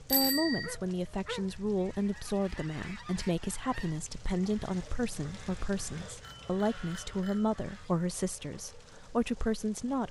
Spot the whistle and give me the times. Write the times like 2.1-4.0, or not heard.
not heard.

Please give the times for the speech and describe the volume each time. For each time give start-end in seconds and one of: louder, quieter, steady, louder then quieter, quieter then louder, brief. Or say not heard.
0.0-10.0 steady.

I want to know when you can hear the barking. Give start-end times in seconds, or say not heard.
0.6-1.6.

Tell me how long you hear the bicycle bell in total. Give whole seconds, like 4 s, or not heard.
2 s.